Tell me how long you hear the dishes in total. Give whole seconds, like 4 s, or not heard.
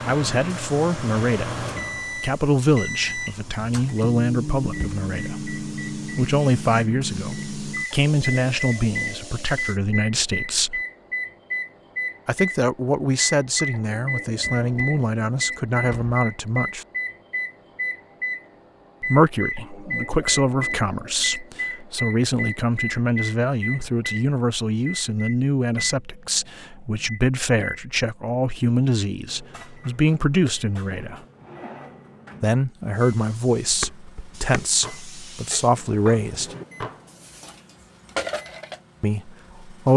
5 s.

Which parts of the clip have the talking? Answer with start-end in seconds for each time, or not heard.
0.1-10.8, 12.2-16.9, 19.0-31.2, 32.4-36.5, 39.0-39.9.